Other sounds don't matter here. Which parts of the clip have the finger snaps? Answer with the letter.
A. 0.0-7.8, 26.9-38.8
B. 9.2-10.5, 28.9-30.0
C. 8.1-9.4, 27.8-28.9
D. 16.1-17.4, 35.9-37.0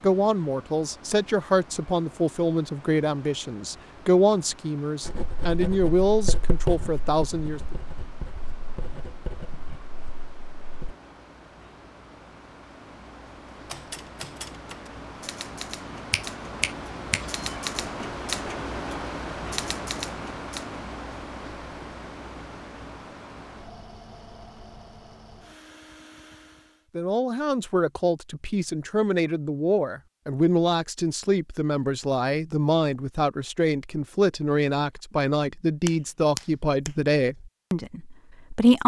D.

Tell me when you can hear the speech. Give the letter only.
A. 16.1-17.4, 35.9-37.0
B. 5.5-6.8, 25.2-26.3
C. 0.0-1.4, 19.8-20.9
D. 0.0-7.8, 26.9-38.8
D.